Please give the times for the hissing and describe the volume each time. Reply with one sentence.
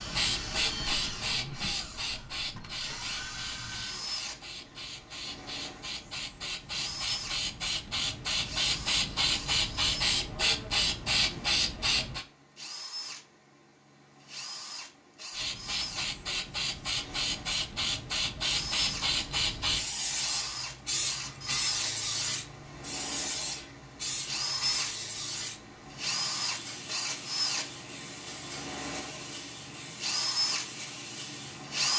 You can hear the hissing from 0.0 to 12.2 s, getting quieter then louder; and from 15.3 to 31.7 s, getting quieter.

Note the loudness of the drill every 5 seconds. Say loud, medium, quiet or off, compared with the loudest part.
medium, medium, quiet, medium, medium, medium, loud.